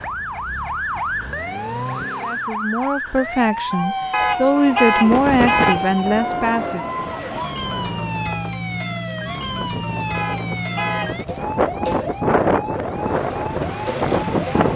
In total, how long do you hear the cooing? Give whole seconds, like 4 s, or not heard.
not heard.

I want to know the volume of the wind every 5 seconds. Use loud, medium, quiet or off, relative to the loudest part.
off, medium, loud.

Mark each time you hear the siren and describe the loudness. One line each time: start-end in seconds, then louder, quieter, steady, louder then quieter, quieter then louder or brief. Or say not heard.
0.0-14.7 steady.